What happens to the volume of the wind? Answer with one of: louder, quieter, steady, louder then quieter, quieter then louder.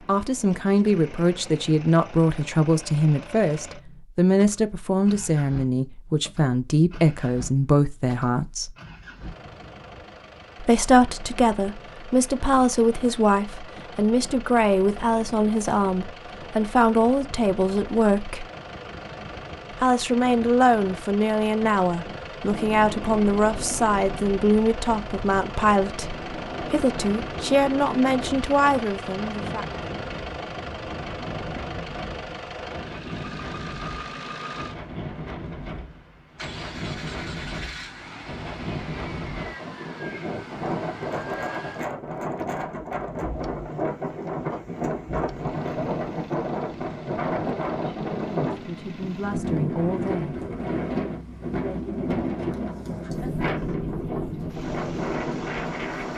louder.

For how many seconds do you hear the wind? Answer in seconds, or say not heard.
34 s.